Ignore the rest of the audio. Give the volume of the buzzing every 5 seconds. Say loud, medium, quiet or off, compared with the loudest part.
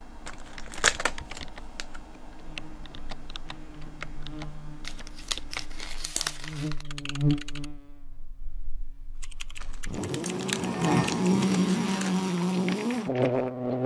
quiet, medium, loud.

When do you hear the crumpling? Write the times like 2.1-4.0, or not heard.
0.2-2.1, 4.8-6.8, 9.6-12.2.